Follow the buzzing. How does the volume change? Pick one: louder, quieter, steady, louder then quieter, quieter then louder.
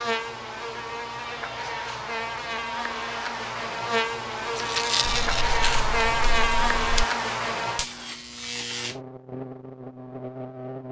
louder then quieter.